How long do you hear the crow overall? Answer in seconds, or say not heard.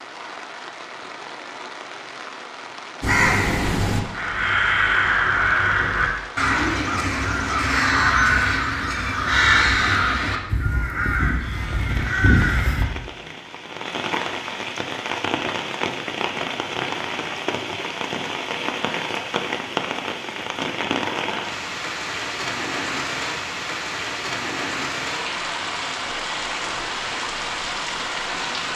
10 s.